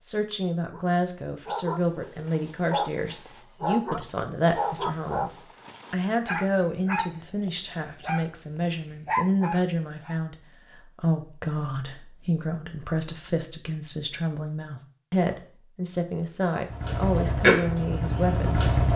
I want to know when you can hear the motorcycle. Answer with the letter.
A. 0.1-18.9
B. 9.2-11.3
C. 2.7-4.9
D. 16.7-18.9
D.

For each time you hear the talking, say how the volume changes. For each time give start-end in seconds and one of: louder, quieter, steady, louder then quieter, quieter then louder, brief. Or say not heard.
0.1-18.9 steady.